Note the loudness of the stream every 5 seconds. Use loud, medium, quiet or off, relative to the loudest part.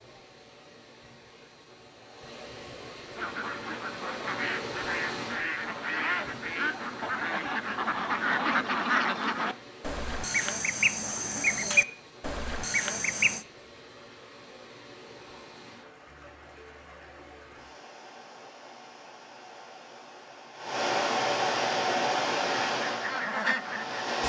quiet, quiet, quiet, quiet, loud.